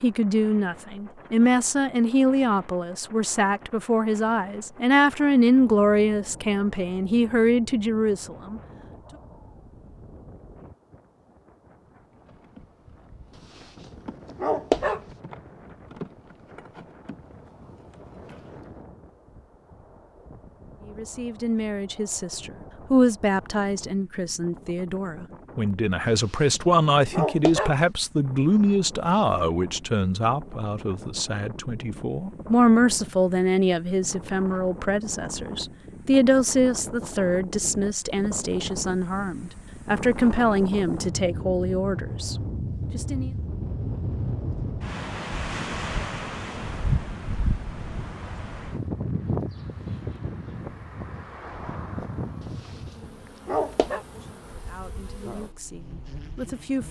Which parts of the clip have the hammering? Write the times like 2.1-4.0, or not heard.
not heard.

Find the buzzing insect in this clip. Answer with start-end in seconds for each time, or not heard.
12.1-18.7, 49.4-56.8.